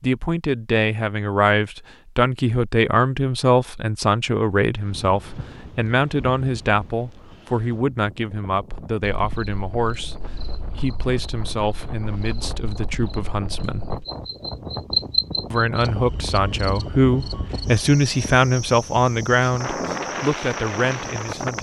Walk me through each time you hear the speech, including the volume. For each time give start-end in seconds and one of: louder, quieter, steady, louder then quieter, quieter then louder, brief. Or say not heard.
0.0-13.9 quieter
15.5-21.5 louder then quieter.